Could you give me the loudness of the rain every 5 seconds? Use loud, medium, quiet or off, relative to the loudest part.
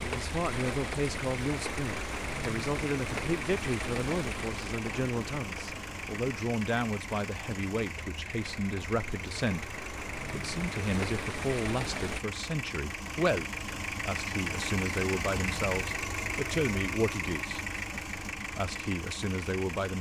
loud, medium, loud, off.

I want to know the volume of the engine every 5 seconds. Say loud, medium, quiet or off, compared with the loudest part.
medium, medium, loud, loud.